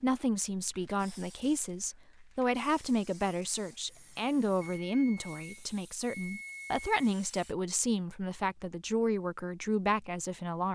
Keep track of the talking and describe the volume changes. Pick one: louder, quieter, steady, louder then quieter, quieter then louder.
steady.